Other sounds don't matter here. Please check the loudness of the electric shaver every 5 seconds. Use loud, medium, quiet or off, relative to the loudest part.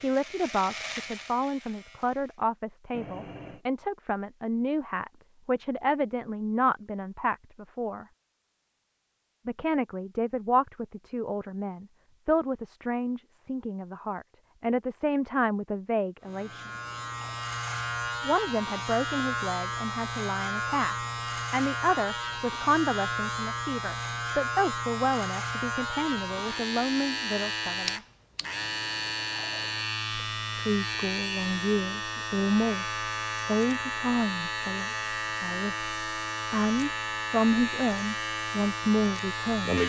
medium, off, off, loud, loud, loud, loud, loud.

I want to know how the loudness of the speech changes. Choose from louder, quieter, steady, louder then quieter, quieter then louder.
steady.